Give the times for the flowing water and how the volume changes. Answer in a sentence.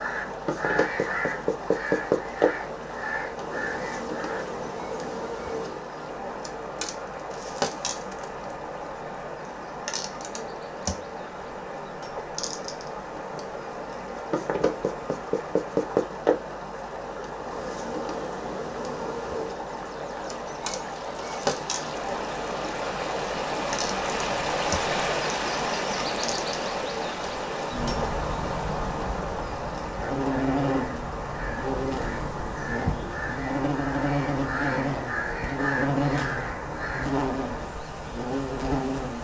The flowing water can be heard from 0.0 to 39.1 s, getting louder then quieter.